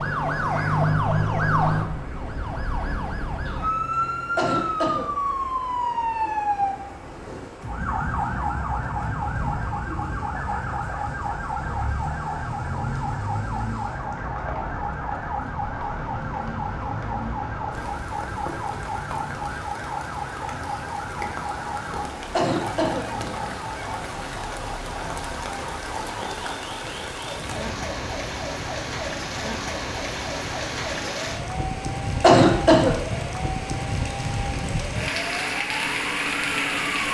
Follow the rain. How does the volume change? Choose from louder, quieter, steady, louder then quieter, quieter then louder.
louder.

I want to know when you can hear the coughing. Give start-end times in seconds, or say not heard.
4.3-5.0, 22.3-23.0, 32.2-32.9.